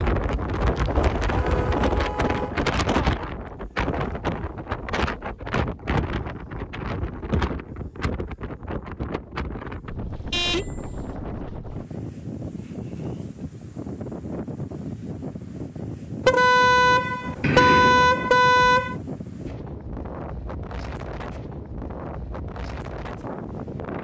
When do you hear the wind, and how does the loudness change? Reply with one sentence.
You can hear the wind from 0.0 to 24.0 s, getting quieter.